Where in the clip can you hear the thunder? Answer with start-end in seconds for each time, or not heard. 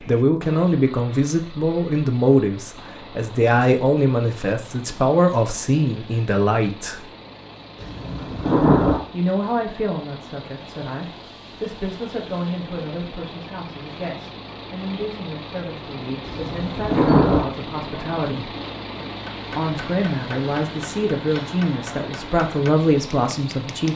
7.8-9.0, 16.2-17.4.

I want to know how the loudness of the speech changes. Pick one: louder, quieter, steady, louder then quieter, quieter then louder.
quieter then louder.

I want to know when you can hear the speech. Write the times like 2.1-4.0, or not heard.
0.0-7.1, 9.1-18.6, 19.4-23.9.